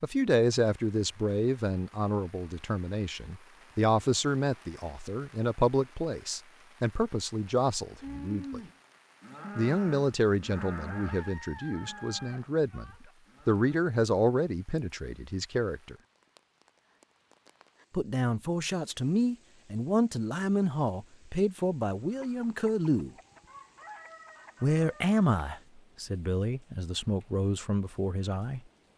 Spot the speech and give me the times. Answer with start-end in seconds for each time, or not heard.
0.0-8.6, 9.6-15.9, 17.9-23.1, 24.6-28.6.